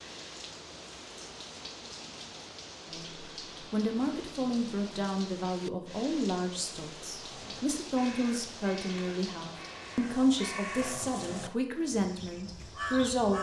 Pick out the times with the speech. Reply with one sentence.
The speech can be heard from 2.9 to 13.3 s.